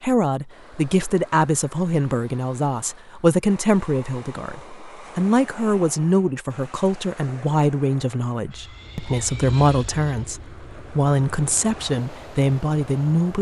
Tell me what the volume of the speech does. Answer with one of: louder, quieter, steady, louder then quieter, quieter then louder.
steady.